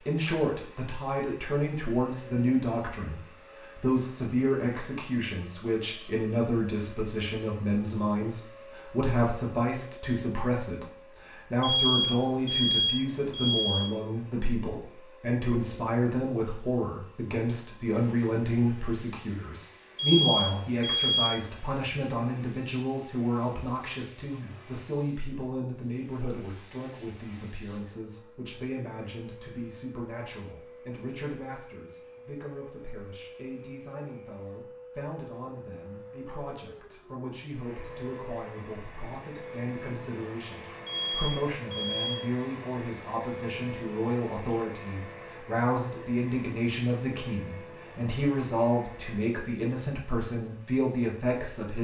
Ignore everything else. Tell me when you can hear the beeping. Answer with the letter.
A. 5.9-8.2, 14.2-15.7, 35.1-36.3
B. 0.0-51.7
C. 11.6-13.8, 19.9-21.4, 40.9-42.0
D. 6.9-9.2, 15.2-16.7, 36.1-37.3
C.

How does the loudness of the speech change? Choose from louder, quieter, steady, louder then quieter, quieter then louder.
quieter then louder.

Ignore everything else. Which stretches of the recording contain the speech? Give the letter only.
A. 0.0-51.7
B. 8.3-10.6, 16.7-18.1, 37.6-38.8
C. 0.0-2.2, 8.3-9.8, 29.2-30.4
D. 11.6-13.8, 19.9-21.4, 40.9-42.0
A.